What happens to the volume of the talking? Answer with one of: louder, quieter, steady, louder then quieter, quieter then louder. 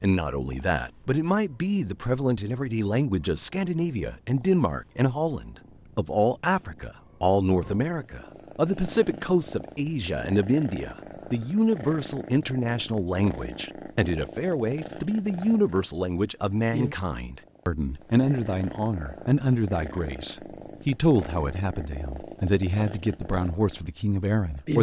steady.